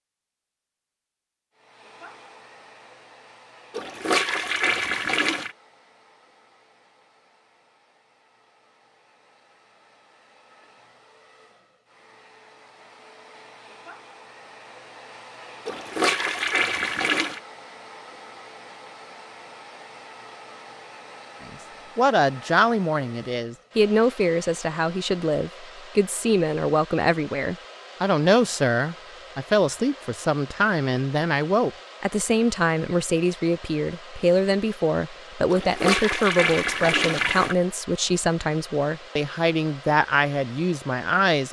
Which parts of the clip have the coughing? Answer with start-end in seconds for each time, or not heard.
not heard.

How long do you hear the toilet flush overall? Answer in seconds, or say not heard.
6 s.